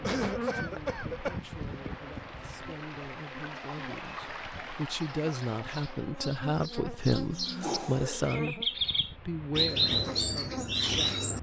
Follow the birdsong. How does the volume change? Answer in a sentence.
The volume of the birdsong goes up.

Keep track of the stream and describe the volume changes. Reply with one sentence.
The loudness of the stream goes up.